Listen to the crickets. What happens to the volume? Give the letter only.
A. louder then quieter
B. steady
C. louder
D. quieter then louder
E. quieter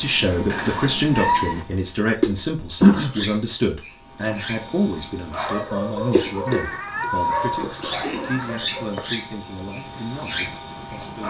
A.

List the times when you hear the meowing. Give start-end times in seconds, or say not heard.
0.5-1.6, 6.5-8.6.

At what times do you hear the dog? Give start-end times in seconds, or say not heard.
2.9-6.7, 7.2-11.2.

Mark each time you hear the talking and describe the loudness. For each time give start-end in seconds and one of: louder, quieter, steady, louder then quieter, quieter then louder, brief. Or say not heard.
0.0-11.2 quieter.